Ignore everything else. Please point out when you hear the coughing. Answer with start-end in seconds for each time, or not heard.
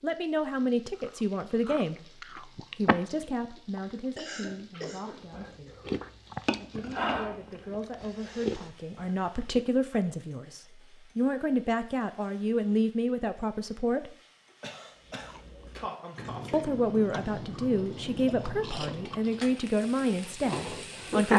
4.0-5.3, 14.6-16.8.